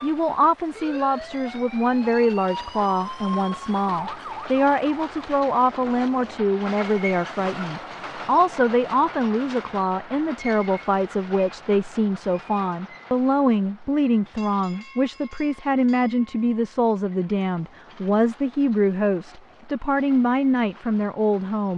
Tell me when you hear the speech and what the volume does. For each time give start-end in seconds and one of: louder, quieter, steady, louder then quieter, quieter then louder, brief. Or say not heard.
0.0-21.7 steady.